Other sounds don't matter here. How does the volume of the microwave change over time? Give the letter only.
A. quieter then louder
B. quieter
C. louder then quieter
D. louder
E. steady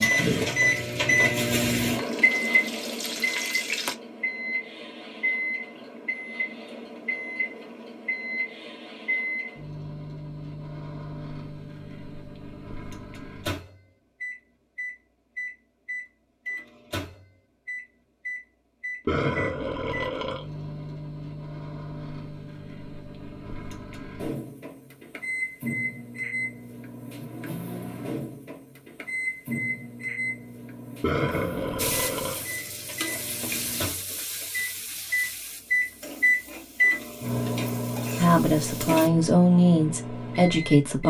A.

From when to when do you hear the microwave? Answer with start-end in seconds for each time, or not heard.
0.0-41.0.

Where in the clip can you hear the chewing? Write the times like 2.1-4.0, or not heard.
not heard.